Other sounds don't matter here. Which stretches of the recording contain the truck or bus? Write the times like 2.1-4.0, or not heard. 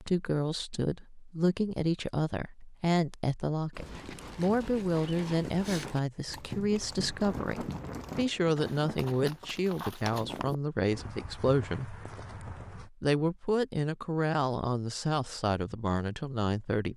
not heard.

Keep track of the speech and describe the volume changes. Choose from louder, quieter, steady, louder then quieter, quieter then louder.
steady.